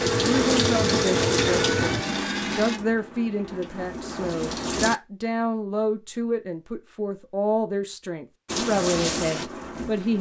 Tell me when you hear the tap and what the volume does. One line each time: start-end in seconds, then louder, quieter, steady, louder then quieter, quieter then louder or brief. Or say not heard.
0.0-5.0 quieter then louder
8.4-10.1 brief.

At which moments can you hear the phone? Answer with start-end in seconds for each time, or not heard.
0.0-2.0.